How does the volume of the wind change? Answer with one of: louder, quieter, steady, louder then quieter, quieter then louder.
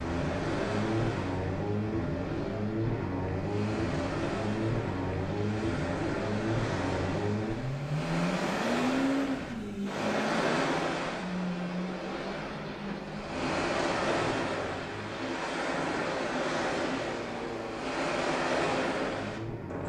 louder.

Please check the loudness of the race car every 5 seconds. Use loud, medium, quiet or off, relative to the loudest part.
loud, loud, medium, medium.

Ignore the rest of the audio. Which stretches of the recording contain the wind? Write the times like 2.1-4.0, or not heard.
0.0-19.8.